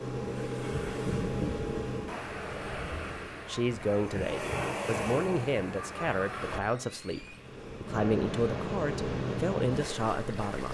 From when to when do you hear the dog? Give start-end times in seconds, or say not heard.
not heard.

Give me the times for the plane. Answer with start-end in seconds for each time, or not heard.
0.0-2.2, 7.3-10.6.